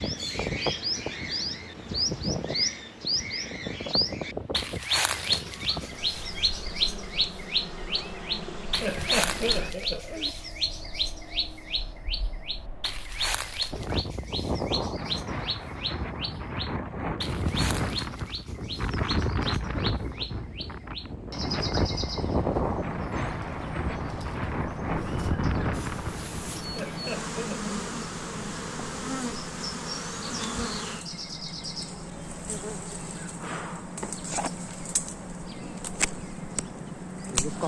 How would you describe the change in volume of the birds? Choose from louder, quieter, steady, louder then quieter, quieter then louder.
quieter.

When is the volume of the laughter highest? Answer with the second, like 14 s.
9 s.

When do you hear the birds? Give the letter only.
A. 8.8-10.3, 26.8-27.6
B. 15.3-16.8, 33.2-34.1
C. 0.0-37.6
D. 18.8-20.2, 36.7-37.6
C.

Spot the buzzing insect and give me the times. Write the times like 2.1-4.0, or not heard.
5.1-9.8, 25.7-37.6.